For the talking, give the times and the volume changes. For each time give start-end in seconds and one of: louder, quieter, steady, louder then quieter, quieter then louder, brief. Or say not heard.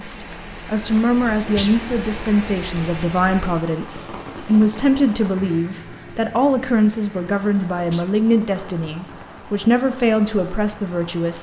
0.0-11.3 steady.